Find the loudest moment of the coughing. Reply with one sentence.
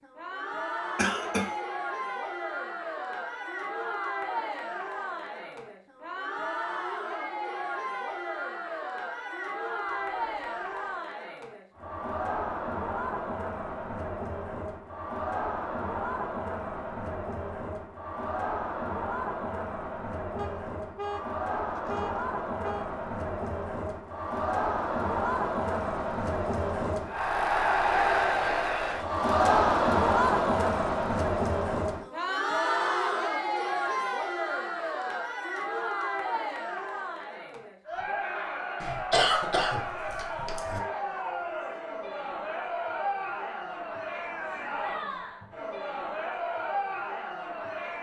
The volume of the coughing peaks at 39 seconds.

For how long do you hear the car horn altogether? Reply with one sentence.
You can hear the car horn for 4 seconds altogether.